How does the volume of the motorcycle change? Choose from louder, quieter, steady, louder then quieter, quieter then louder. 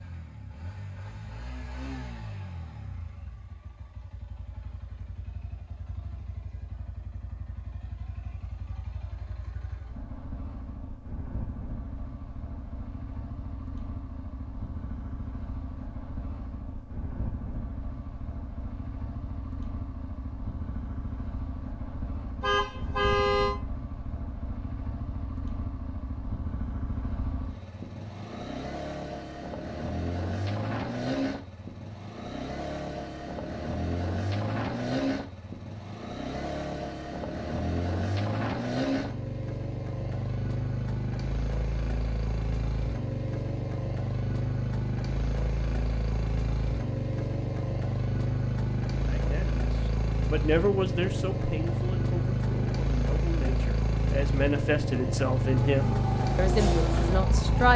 louder.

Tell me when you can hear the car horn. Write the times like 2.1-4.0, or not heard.
22.4-23.6.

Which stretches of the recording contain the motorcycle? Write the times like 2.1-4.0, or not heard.
0.0-57.7.